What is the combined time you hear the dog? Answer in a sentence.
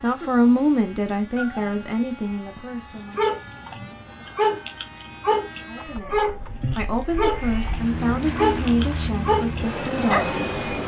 You can hear the dog for 7 seconds altogether.